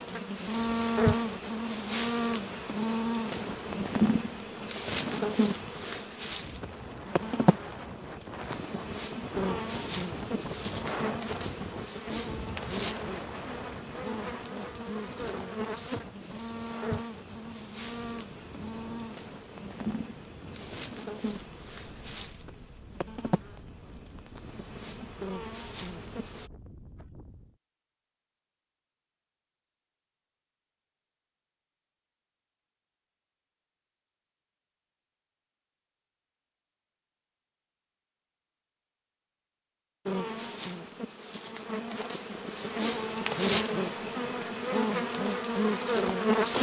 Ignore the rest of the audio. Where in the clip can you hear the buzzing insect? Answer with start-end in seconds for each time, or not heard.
0.0-26.5, 40.0-46.5.